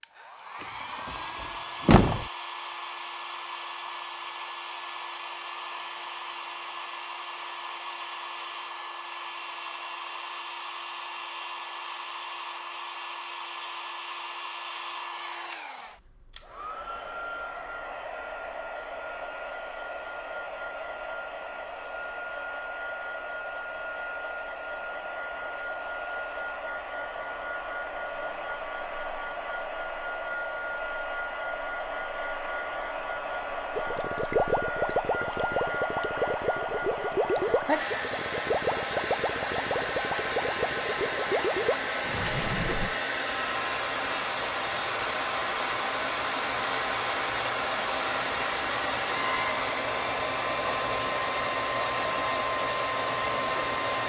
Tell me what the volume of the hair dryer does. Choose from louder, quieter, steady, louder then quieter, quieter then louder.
louder.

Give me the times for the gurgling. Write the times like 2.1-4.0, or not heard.
33.8-43.0.